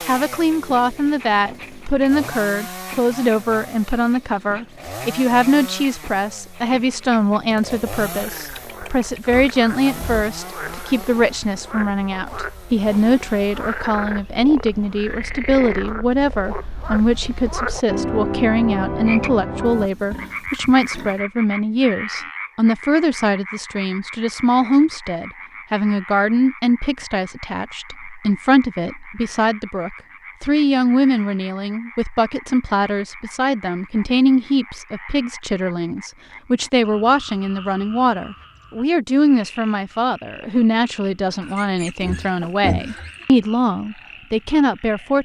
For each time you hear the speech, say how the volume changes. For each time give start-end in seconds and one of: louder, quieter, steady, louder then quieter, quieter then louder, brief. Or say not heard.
0.1-45.1 steady.